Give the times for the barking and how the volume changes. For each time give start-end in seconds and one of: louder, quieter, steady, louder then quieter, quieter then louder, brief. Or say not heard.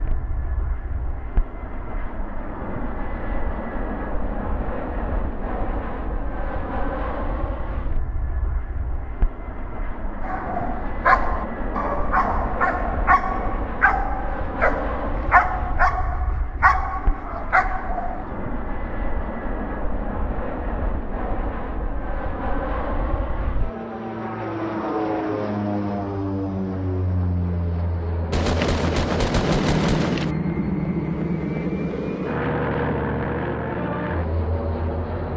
10.2-18.2 steady.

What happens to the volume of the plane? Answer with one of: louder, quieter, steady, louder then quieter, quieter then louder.
louder.